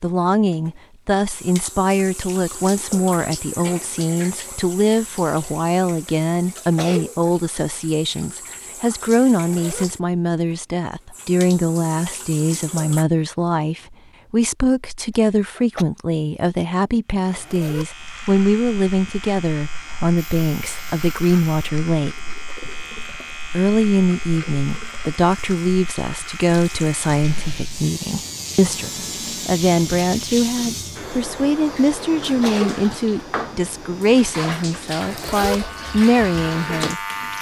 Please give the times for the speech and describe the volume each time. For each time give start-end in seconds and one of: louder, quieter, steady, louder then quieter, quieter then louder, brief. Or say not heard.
0.0-22.1 steady
23.6-37.3 steady.